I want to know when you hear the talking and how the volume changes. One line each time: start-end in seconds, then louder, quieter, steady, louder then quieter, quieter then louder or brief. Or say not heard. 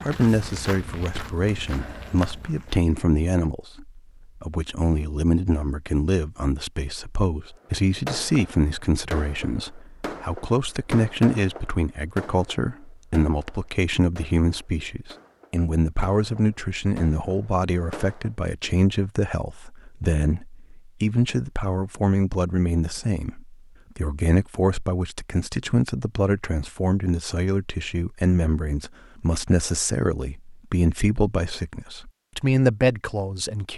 0.0-33.7 steady.